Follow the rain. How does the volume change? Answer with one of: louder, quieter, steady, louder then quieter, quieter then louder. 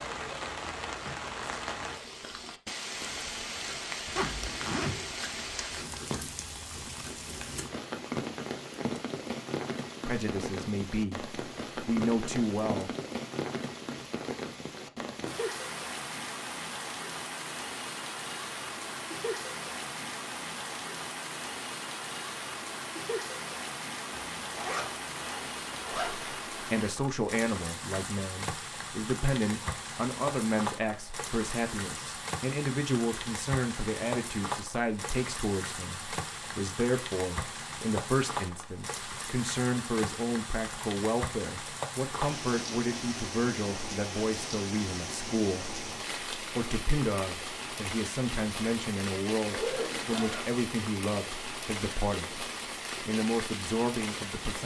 steady.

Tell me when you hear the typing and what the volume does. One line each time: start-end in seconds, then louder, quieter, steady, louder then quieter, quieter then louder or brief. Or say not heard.
not heard.